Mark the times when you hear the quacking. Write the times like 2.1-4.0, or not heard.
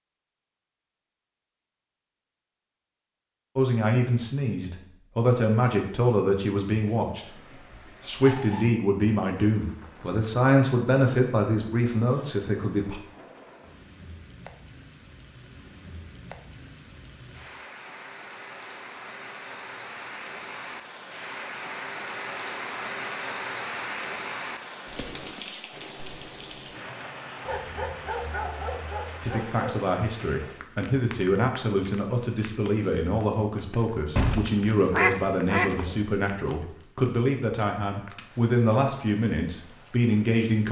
34.1-36.0.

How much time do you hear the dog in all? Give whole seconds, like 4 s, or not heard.
4 s.